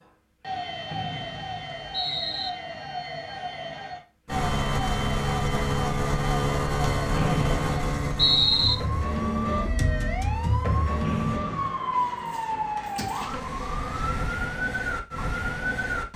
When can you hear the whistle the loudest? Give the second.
8 s.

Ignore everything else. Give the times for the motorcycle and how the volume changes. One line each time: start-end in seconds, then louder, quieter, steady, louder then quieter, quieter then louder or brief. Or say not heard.
4.2-11.4 quieter.